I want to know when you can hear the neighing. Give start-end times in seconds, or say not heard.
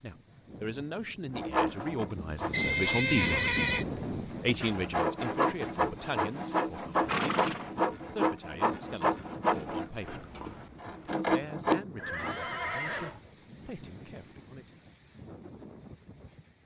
2.5-3.9, 7.0-7.7, 11.9-13.2.